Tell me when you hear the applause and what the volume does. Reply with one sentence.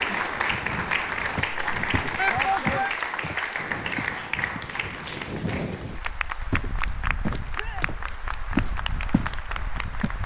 You can hear the applause from 0.0 to 10.2 s, getting quieter.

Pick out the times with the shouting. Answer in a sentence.
You can hear the shouting from 2.1 to 3.0 s and from 7.5 to 8.0 s.